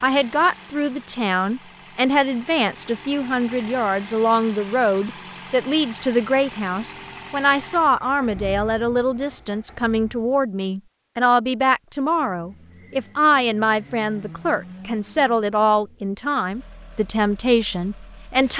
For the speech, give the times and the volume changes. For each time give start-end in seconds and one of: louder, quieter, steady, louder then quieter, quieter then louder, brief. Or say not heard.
0.0-18.5 steady.